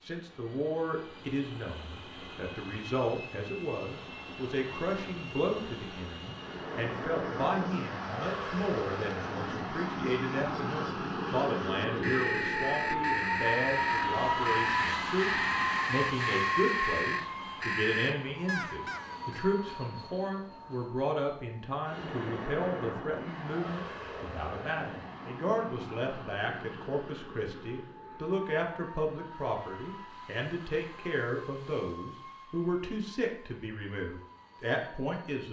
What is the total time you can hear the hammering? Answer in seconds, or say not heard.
not heard.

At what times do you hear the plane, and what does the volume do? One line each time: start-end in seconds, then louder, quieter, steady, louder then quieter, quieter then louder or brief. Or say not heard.
0.0-35.4 louder then quieter.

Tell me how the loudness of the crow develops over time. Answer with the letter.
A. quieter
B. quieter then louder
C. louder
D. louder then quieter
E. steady
C.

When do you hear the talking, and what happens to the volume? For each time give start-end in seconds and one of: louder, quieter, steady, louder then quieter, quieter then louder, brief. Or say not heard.
0.0-35.4 steady.